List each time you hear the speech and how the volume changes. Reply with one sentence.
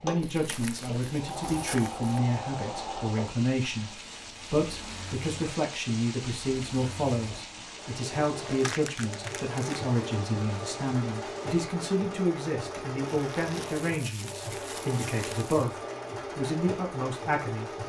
You can hear the speech from 0.0 to 17.8 s, at a steady volume.